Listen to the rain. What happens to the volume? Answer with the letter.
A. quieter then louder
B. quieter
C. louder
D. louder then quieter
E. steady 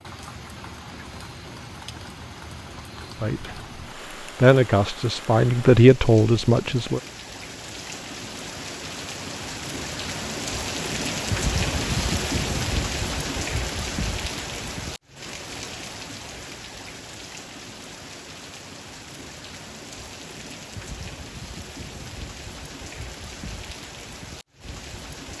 D.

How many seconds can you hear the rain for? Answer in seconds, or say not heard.
25 s.